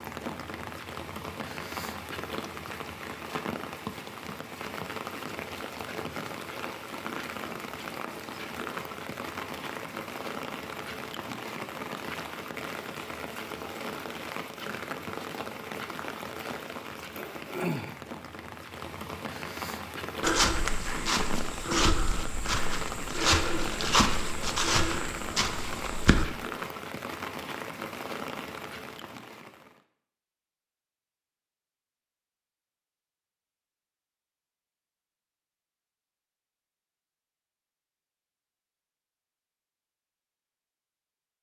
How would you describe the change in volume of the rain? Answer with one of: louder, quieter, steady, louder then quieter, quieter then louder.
steady.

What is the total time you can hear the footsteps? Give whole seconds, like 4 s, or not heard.
6 s.